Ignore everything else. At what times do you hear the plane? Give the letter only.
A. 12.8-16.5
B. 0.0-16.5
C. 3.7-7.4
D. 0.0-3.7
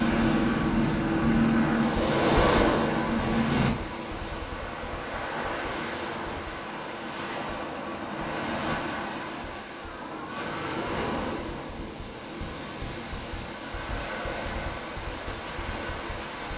D.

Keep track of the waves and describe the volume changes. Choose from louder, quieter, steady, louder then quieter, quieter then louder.
quieter.